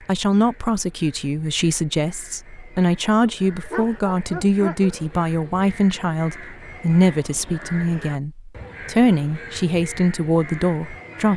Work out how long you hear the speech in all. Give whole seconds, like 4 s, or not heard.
11 s.